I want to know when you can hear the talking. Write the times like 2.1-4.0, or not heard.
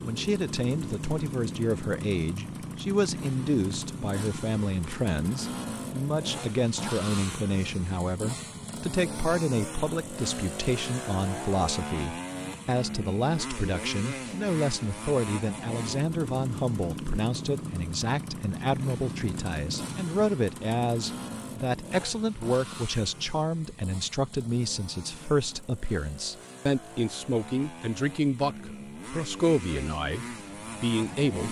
0.0-31.4.